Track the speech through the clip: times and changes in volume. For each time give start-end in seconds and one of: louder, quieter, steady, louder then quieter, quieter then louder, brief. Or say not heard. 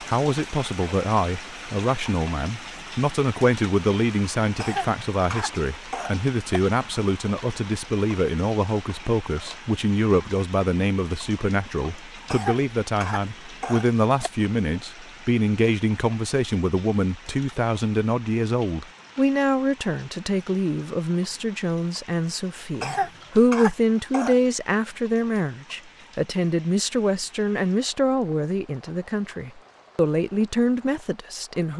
0.0-31.7 steady.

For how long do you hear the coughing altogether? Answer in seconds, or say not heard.
6 s.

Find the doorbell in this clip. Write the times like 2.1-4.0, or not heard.
not heard.